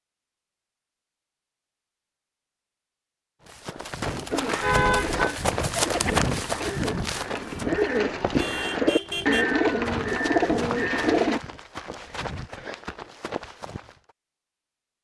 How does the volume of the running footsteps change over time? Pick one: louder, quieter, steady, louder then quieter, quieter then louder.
quieter.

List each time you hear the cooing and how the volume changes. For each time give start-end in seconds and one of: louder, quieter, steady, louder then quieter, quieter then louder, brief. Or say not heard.
4.3-11.4 louder.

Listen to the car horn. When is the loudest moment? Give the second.
5 s.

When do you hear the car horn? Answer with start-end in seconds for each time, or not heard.
4.6-5.3, 8.3-9.4.